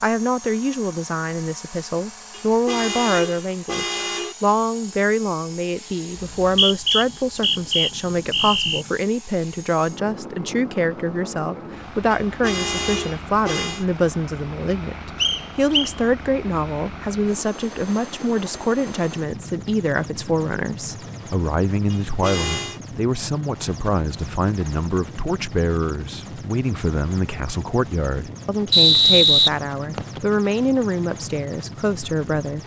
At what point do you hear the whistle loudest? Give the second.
29 s.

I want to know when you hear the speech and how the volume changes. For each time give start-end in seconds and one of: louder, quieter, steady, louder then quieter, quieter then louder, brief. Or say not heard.
0.0-32.6 steady.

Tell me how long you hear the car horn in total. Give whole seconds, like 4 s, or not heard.
5 s.